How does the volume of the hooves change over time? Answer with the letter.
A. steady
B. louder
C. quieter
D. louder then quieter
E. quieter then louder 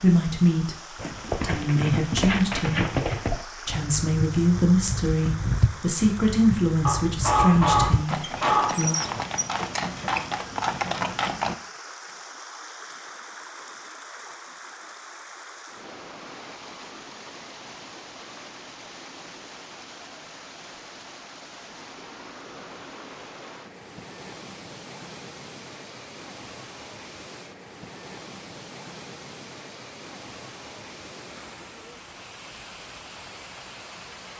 E.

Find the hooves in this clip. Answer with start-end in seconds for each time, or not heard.
0.9-11.6.